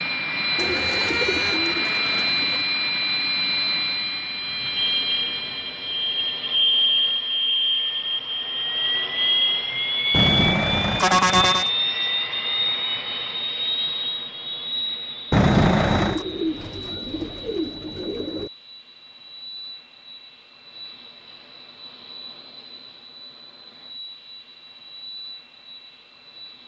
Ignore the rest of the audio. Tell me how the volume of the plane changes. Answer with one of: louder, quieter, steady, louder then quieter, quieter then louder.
quieter.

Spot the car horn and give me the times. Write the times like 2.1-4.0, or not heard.
10.1-11.7, 15.3-16.2.